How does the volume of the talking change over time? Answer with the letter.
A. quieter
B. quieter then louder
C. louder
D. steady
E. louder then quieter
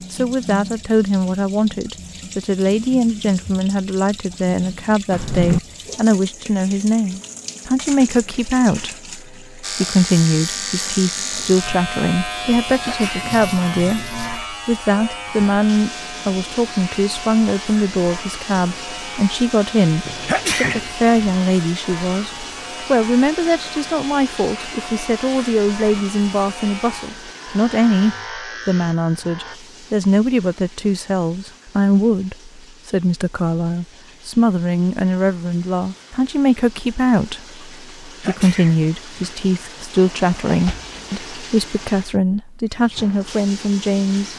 D.